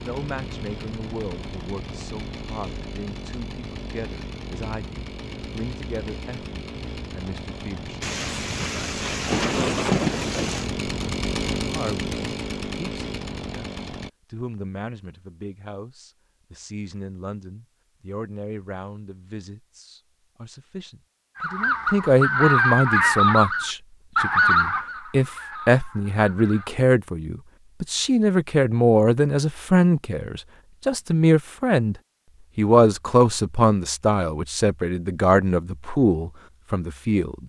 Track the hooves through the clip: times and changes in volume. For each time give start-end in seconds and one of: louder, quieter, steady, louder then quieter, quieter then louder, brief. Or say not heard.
not heard.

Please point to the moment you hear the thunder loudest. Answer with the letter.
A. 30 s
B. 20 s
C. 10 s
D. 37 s
C.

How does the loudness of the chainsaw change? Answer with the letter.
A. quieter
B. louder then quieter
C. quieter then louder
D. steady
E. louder
E.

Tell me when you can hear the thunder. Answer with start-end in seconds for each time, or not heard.
8.0-10.7.